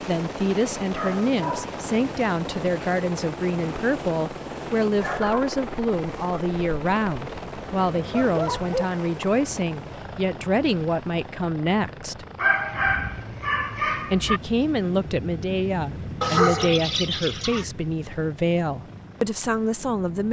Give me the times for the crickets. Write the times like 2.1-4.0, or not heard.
not heard.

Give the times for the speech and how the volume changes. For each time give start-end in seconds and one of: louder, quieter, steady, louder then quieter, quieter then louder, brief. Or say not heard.
0.1-12.2 steady
14.1-20.2 steady.